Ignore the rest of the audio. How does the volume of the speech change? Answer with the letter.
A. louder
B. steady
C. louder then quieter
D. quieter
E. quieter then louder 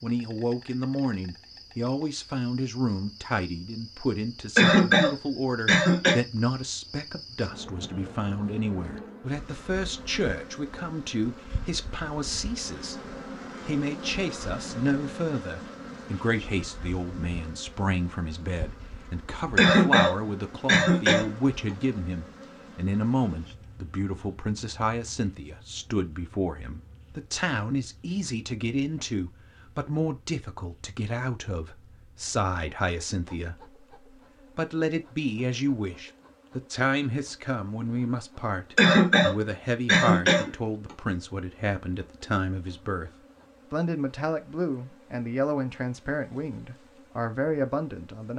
B.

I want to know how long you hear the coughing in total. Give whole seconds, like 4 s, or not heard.
5 s.